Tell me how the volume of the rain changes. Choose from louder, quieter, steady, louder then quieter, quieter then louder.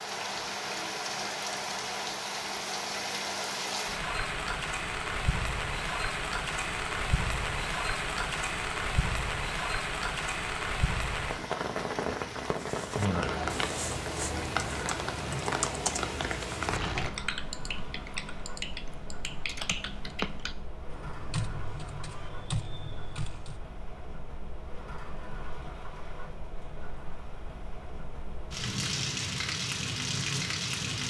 quieter then louder.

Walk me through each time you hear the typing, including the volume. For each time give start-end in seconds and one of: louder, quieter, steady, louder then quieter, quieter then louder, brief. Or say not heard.
12.5-23.6 steady.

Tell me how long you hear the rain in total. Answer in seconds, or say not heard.
31 s.